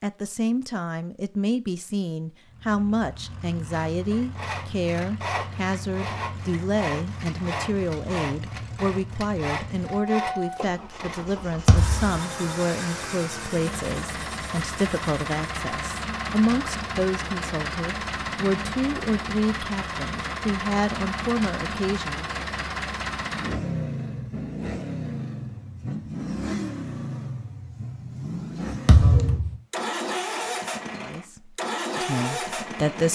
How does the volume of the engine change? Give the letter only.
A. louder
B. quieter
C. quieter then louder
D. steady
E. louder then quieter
A.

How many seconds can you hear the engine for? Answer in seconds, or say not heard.
31 s.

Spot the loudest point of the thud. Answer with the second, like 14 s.
29 s.